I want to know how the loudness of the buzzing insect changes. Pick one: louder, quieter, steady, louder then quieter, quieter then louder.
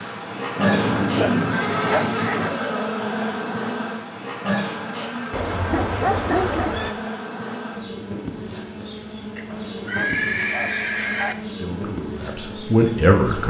quieter.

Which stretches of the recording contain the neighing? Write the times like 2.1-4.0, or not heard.
0.6-2.5, 5.3-7.0, 9.3-11.3.